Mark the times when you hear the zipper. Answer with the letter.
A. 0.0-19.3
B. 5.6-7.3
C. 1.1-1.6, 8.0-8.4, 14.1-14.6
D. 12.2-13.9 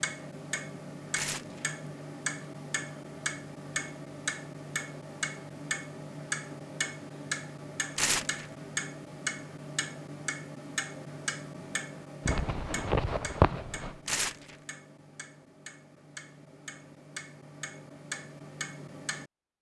D.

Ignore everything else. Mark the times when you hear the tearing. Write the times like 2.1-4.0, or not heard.
1.1-1.6, 8.0-8.4, 14.1-14.6.